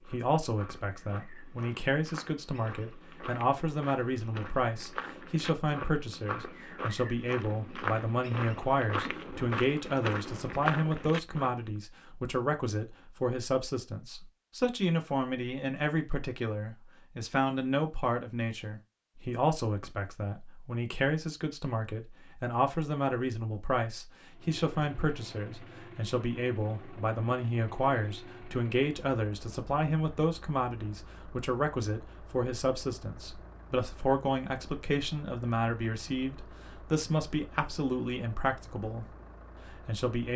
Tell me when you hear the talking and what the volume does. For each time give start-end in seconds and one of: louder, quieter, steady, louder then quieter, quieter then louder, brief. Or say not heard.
0.1-39.0 steady
39.7-40.3 brief.